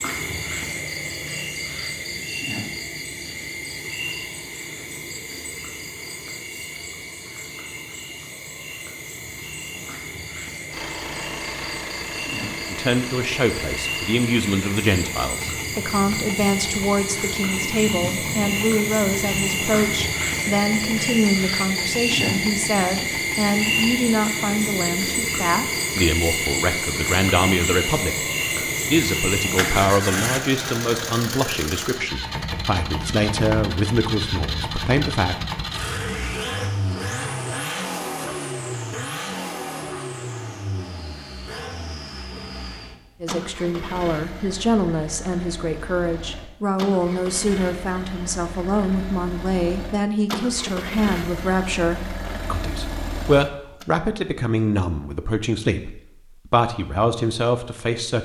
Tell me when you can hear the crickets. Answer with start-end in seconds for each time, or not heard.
0.0-30.1.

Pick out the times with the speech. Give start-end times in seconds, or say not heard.
12.7-28.2, 28.9-35.4, 43.2-58.2.